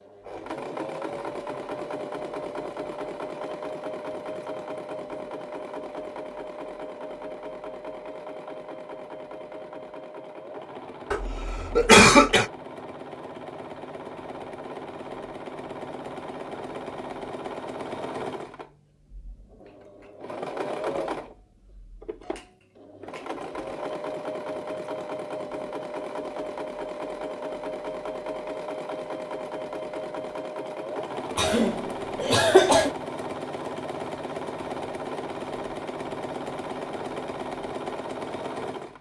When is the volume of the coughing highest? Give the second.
12 s.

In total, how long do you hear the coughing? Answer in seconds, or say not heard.
3 s.